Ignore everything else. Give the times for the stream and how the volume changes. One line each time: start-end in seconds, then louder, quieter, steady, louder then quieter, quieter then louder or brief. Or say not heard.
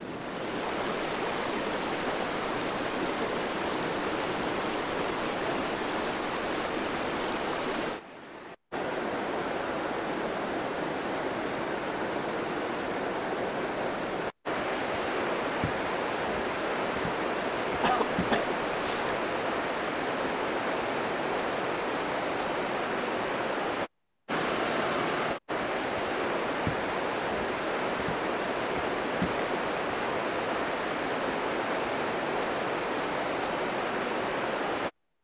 0.0-34.9 steady.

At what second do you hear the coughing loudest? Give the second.
18 s.